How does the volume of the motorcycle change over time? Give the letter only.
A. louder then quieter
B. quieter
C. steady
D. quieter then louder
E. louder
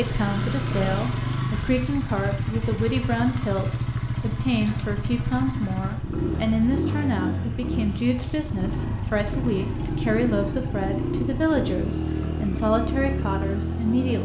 C.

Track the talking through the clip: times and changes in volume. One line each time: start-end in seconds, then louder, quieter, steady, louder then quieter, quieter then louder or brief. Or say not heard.
0.0-14.2 steady.